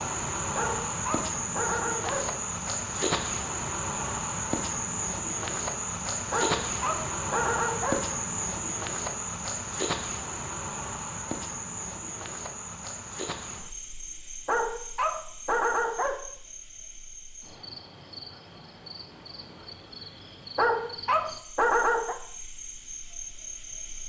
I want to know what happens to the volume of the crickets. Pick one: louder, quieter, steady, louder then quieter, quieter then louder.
quieter.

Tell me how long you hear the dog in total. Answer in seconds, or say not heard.
7 s.